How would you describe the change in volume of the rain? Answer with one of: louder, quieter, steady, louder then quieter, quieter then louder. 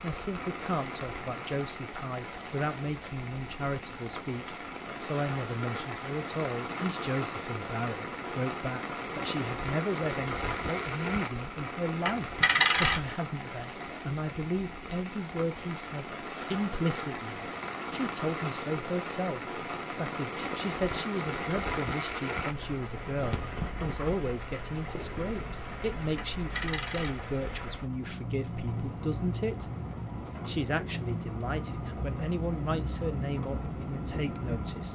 steady.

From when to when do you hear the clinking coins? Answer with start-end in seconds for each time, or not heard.
12.1-13.1, 26.1-27.6.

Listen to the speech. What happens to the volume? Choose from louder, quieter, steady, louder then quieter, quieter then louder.
steady.